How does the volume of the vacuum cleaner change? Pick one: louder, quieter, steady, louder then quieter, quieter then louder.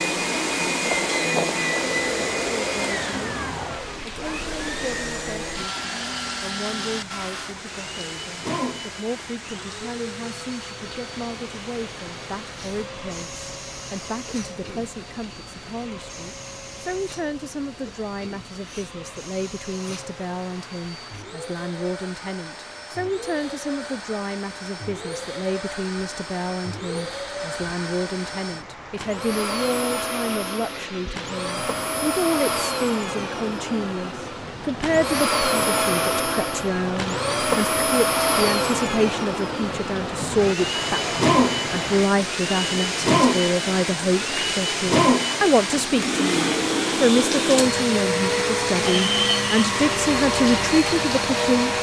quieter then louder.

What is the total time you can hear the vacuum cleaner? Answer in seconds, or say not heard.
52 s.